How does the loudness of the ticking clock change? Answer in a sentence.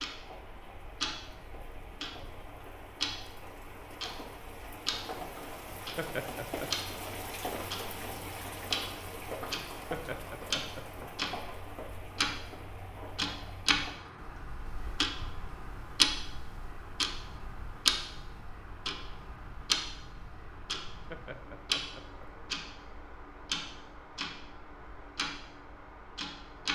The volume of the ticking clock goes up, then down.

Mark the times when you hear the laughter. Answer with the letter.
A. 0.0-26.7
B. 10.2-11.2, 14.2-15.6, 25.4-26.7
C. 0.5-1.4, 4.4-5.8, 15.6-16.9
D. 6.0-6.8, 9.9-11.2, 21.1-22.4
D.